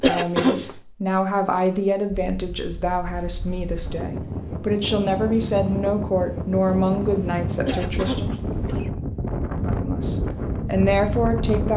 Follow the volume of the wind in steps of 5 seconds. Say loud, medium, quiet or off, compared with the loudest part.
medium, loud, loud.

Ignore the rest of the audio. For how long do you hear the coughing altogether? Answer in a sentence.
You can hear the coughing for 2 seconds altogether.